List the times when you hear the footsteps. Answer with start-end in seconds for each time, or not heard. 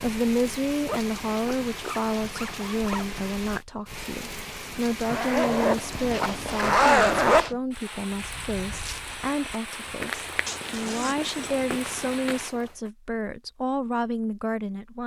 8.1-12.9.